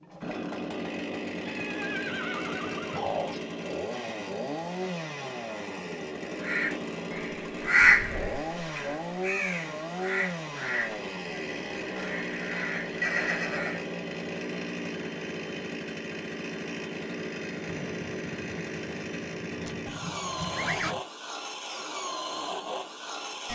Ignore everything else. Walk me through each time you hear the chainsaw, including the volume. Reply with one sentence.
The chainsaw can be heard from 0.0 to 23.5 s, at a steady volume.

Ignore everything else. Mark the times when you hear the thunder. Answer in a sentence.
The thunder can be heard from 17.6 to 21.1 s.